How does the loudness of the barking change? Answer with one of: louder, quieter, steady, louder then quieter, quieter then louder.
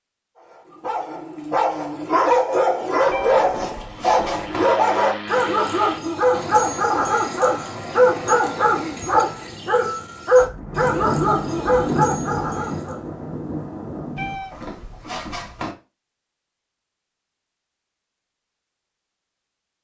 steady.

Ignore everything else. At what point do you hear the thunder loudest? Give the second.
12 s.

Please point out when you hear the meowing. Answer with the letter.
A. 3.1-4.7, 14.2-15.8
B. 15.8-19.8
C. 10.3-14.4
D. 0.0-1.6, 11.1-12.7
A.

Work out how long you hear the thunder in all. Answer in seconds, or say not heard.
4 s.